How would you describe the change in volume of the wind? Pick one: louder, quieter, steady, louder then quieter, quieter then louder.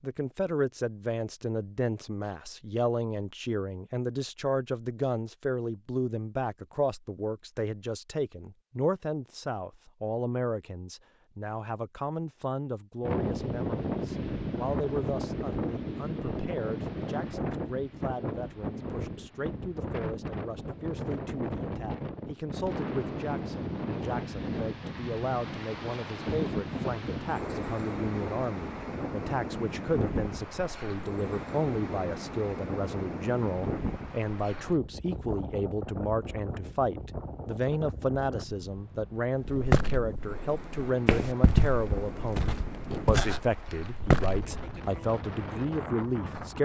quieter.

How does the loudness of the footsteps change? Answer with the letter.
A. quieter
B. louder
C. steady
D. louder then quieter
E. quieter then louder
D.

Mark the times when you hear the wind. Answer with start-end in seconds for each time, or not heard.
13.0-46.6.